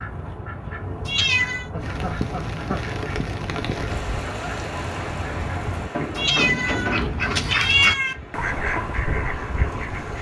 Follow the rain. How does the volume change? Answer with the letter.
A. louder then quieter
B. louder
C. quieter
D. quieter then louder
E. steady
C.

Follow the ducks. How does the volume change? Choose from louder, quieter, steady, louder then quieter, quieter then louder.
louder.